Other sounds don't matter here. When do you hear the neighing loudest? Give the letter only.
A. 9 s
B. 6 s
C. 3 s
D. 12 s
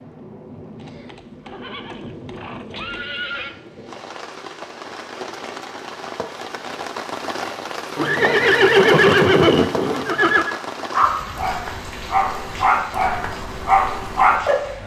A.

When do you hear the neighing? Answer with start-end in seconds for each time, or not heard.
0.8-3.5, 8.0-10.6.